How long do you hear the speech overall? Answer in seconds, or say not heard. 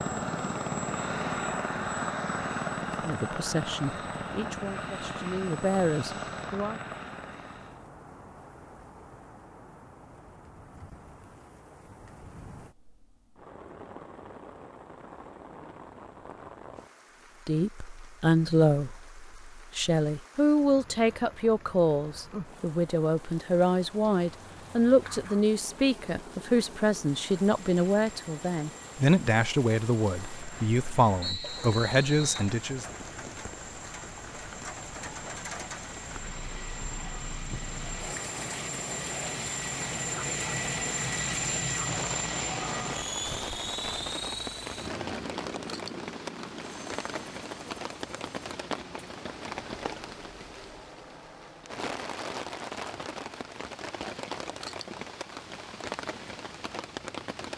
19 s.